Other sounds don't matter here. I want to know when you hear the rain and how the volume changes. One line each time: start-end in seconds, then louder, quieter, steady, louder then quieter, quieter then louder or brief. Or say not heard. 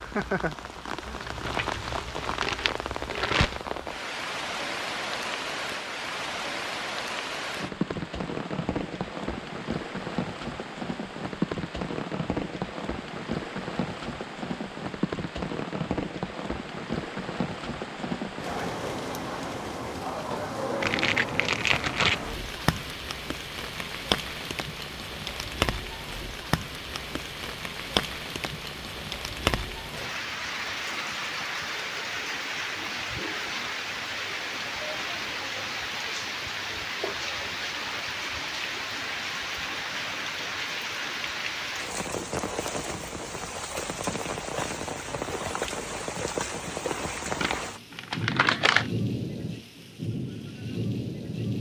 0.0-51.5 steady.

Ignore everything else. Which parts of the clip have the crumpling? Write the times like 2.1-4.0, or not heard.
1.2-3.6, 20.8-22.2, 47.4-48.9.